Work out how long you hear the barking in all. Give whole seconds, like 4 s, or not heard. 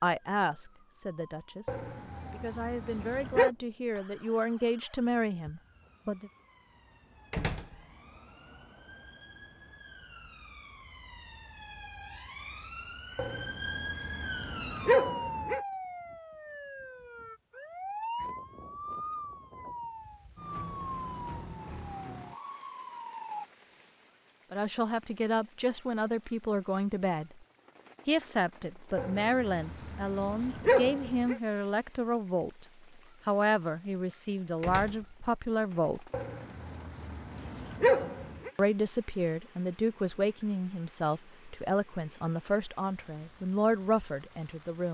9 s.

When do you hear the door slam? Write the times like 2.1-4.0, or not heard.
7.3-7.8, 34.6-35.1.